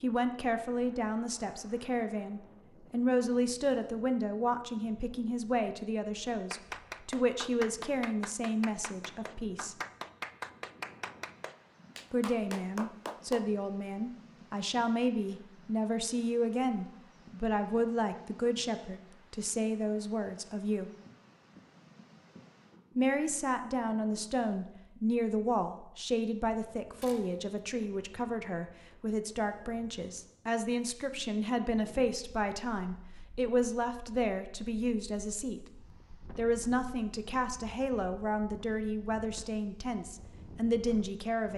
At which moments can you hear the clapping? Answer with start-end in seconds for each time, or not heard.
6.5-13.5.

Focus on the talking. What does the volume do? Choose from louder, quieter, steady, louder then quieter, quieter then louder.
steady.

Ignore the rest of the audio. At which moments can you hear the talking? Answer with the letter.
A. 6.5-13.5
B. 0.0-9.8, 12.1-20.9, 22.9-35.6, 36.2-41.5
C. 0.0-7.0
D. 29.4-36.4
B.